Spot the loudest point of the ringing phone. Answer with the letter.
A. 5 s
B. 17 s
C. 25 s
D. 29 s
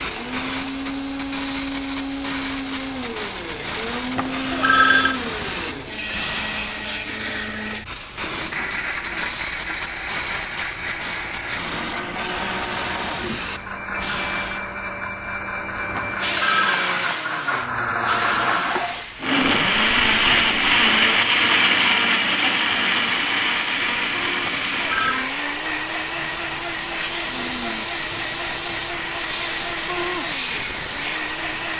A.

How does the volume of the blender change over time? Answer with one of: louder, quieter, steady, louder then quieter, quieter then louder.
louder then quieter.